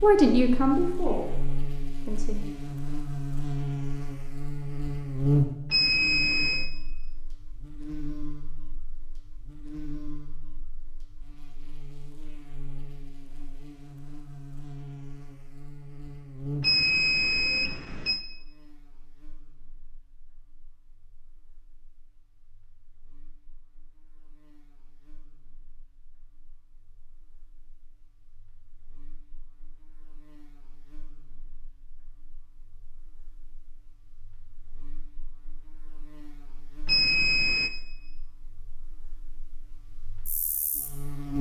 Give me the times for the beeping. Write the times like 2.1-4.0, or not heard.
5.7-6.7, 16.6-18.2, 36.9-37.7.